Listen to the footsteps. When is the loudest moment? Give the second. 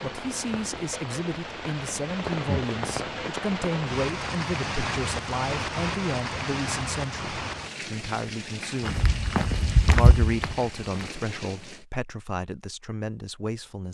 10 s.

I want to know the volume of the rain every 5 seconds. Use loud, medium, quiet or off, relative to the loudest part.
loud, loud, medium.